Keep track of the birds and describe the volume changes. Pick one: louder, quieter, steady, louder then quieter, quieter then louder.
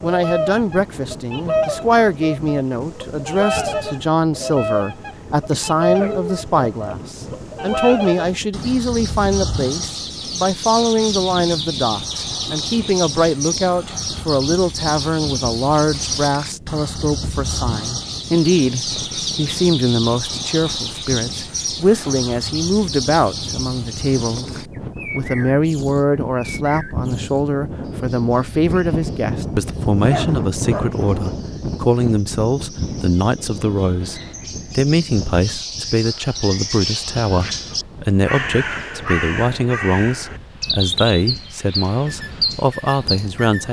quieter then louder.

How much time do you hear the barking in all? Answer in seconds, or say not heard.
2 s.